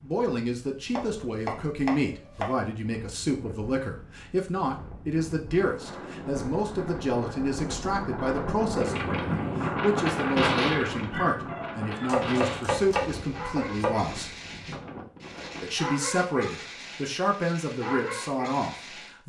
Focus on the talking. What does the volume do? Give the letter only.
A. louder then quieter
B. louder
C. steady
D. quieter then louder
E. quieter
C.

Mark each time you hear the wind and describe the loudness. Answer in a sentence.
You can hear the wind from 0.0 to 15.8 s, getting louder then quieter.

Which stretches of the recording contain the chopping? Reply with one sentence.
The chopping can be heard from 0.9 to 2.5 s and from 12.1 to 14.1 s.